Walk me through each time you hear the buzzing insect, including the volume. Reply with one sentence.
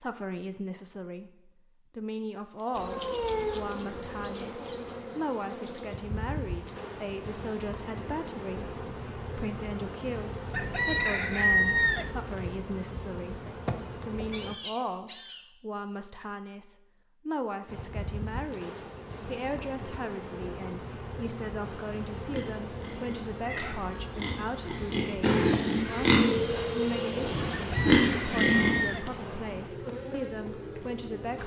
The buzzing insect can be heard from 2.7 to 14.6 s, at a steady volume; and from 17.6 to 31.4 s, at a steady volume.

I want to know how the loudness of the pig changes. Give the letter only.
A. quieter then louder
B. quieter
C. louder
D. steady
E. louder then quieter
C.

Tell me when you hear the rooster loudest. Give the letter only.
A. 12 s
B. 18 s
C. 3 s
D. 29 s
A.